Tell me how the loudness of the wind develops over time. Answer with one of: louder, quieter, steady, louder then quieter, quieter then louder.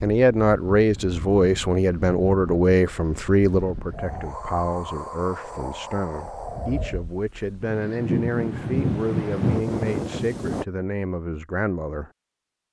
louder.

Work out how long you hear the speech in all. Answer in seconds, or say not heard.
12 s.